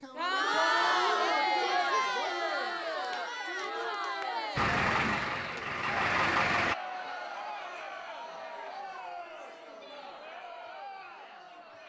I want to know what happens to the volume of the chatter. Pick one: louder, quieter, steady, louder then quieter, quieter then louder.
quieter.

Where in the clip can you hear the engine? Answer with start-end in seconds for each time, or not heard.
4.5-6.8.